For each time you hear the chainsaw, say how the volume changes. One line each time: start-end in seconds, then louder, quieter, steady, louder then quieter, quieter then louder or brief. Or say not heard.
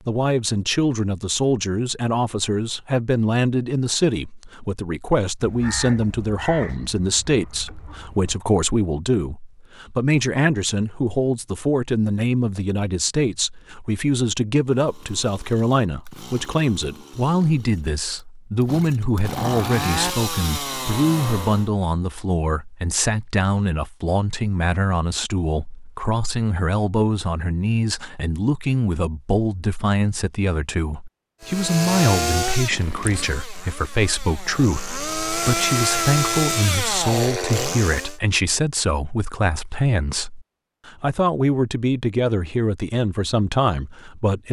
14.7-21.7 louder
31.4-38.1 quieter then louder.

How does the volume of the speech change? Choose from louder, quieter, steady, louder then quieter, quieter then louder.
steady.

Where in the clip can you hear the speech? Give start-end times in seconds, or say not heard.
0.1-44.4.